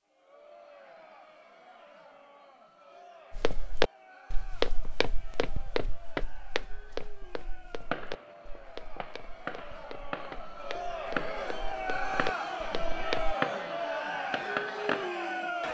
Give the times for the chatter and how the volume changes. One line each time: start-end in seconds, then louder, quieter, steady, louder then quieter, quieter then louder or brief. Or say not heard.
0.0-15.6 louder.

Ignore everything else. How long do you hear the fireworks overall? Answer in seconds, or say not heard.
7 s.